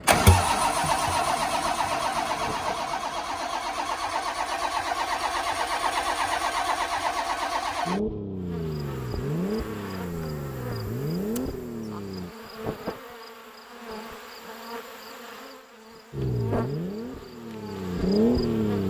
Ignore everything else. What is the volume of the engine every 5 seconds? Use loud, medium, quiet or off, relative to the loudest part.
loud, loud, medium, loud.